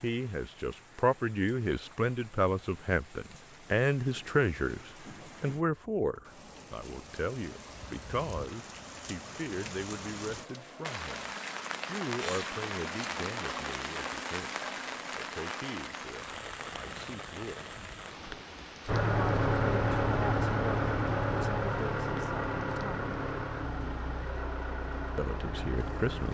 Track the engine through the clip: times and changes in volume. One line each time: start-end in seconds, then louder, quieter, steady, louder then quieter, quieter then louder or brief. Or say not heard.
18.9-26.3 quieter.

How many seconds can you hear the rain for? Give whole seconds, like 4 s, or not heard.
26 s.